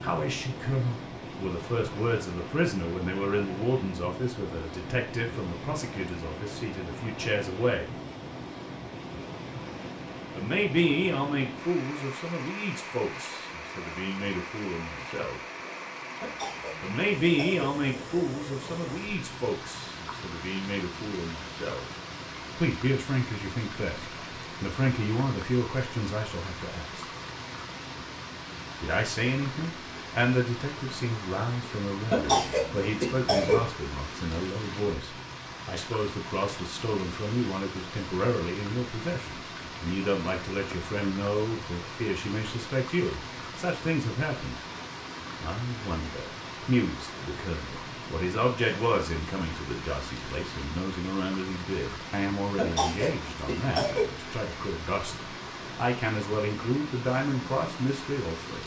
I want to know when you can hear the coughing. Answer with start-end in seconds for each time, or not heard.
16.2-17.6, 32.1-33.7, 52.5-54.1.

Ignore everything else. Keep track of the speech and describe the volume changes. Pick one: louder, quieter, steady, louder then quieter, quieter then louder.
steady.